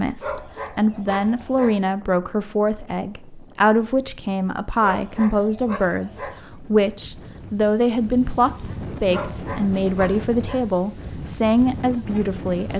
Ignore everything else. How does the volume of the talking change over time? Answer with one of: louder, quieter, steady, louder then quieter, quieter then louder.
steady.